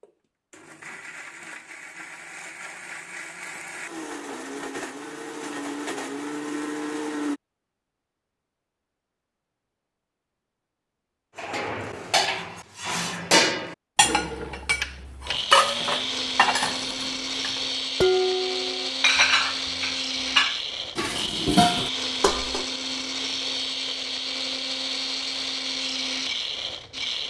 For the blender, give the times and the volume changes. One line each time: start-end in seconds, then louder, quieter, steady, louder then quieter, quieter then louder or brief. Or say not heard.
0.0-7.4 louder
14.0-27.2 steady.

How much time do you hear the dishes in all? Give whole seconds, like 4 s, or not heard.
11 s.